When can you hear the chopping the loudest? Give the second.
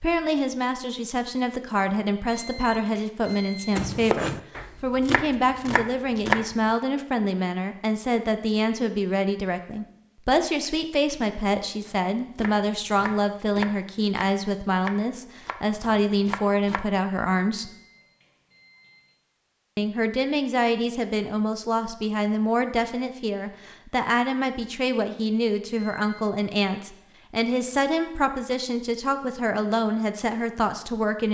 6 s.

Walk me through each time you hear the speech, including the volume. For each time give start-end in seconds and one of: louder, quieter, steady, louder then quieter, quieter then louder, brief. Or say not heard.
0.0-17.8 steady
19.8-31.3 steady.